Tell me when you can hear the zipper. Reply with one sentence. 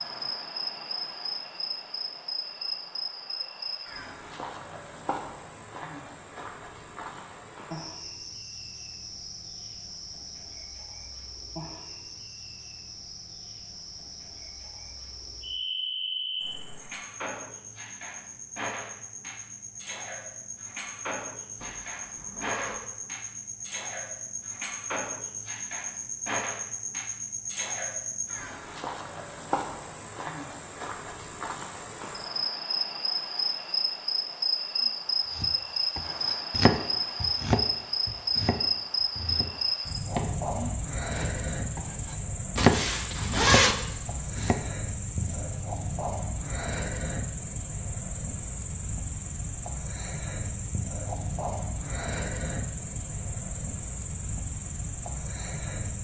The zipper can be heard from 21.6 to 22.8 s and from 42.5 to 43.8 s.